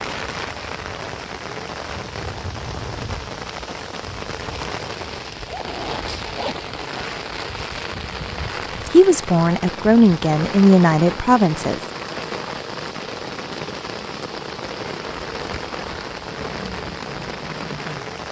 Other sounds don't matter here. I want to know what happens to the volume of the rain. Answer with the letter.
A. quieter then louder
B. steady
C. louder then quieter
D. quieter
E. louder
B.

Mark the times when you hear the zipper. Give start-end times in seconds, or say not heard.
5.5-6.7.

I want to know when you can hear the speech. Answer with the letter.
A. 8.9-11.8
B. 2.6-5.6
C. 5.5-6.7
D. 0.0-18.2
A.